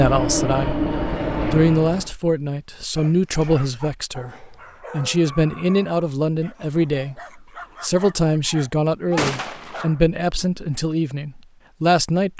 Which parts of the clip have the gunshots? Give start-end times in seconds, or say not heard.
9.2-9.8.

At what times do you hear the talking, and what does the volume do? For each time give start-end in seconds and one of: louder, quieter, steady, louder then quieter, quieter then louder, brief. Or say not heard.
0.0-0.9 brief
1.5-12.3 steady.